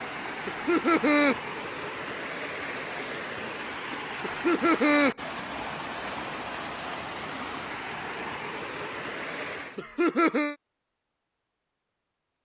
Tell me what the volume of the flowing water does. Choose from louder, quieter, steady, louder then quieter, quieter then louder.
steady.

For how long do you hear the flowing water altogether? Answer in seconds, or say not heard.
10 s.